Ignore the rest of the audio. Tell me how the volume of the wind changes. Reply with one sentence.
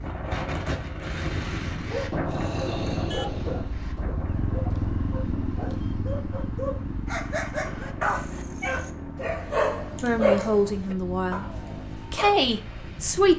The volume of the wind goes down.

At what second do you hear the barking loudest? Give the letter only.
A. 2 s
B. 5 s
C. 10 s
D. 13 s
C.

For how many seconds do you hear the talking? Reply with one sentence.
You can hear the talking for 3 seconds altogether.